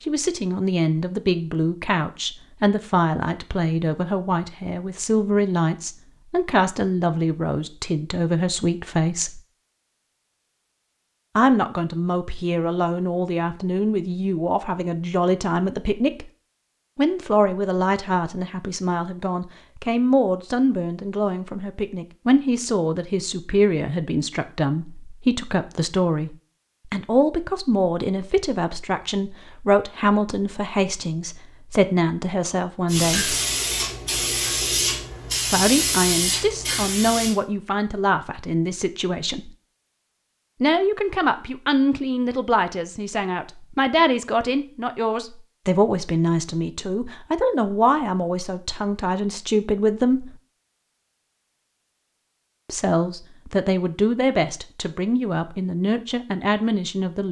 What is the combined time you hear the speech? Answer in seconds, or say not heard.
49 s.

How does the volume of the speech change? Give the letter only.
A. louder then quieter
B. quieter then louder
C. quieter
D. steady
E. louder
D.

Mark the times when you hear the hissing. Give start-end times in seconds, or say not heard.
32.9-37.4.